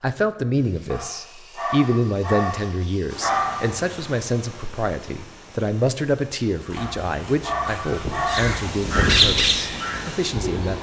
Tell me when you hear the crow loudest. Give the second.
9 s.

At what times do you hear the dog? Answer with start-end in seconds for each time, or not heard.
0.9-3.8, 6.8-8.6.